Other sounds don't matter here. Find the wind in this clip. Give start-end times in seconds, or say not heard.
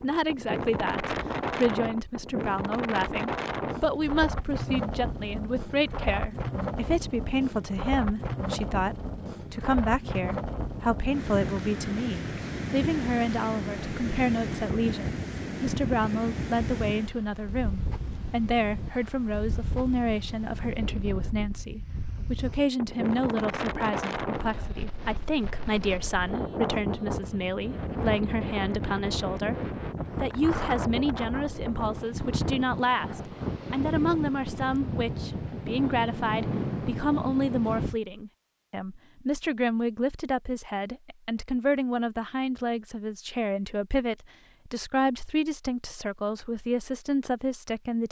0.0-38.0.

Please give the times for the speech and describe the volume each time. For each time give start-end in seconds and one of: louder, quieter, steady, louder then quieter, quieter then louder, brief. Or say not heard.
0.0-29.6 steady
30.1-48.0 steady.